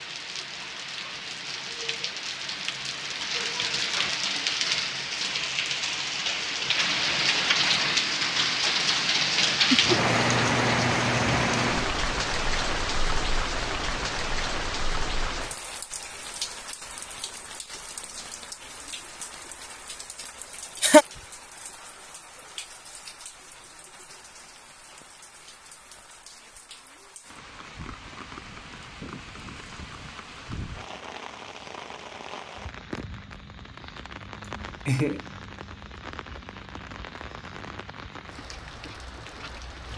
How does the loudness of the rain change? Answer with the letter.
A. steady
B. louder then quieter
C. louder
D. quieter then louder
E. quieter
E.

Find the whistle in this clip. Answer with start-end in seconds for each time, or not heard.
not heard.